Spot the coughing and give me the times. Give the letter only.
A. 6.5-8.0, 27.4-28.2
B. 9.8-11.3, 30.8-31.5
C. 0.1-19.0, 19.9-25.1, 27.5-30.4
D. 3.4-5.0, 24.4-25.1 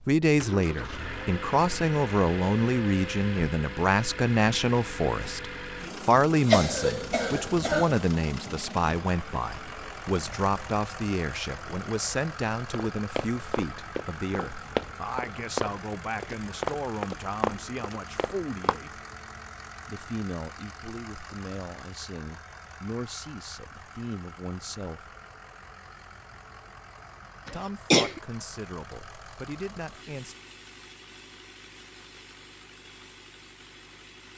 A.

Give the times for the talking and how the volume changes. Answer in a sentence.
You can hear the talking from 0.1 to 19.0 s, getting quieter; from 19.9 to 25.1 s, at a steady volume; and briefly from 27.5 to 30.4 s.